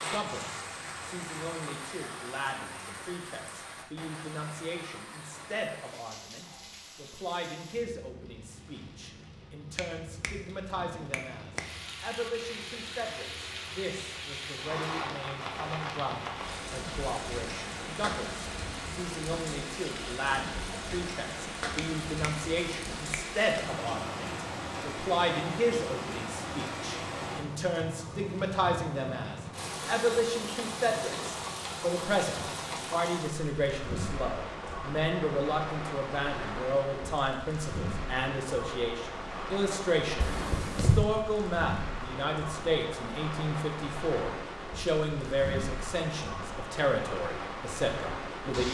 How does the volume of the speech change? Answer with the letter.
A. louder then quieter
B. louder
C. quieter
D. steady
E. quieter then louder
B.